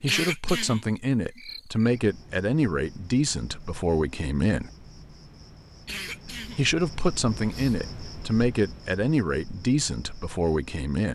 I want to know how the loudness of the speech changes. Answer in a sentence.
The volume of the speech stays about the same.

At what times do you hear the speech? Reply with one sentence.
The speech can be heard from 0.0 to 4.7 s and from 6.5 to 11.0 s.